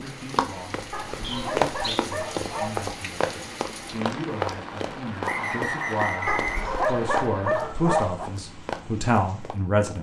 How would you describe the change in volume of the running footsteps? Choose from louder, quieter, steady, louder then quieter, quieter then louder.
quieter.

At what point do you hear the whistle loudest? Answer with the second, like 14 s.
6 s.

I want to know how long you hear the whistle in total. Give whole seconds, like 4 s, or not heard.
3 s.